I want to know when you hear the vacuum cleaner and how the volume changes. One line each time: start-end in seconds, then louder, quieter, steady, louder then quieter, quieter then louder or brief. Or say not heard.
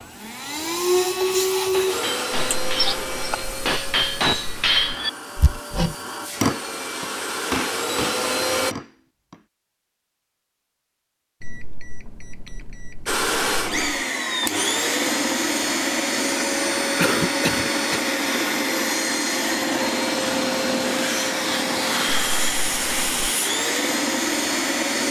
0.0-8.8 quieter then louder
13.1-25.0 steady.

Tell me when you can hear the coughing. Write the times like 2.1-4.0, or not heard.
2.5-3.4, 16.9-18.1.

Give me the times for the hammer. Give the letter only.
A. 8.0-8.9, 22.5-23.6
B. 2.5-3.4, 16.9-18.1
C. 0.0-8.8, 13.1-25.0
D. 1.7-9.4
D.